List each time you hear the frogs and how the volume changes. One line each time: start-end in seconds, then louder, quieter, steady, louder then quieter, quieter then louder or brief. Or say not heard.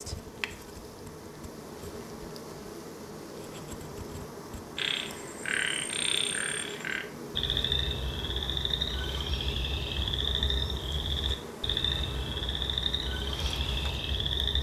4.8-14.5 steady.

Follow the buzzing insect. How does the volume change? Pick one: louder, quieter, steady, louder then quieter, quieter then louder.
steady.